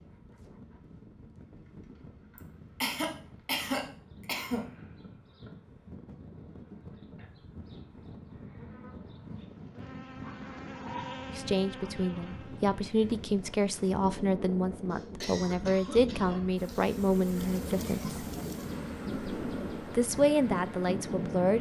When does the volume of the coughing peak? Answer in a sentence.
The loudest moment of the coughing is at 4 seconds.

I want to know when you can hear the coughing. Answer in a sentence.
You can hear the coughing from 2.4 to 4.7 s and from 14.9 to 17.0 s.